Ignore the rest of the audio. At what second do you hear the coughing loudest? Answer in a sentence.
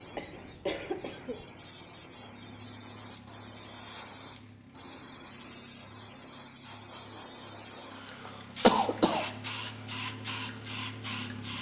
The volume of the coughing peaks at 9 seconds.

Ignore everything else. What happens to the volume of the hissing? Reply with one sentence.
The volume of the hissing goes up.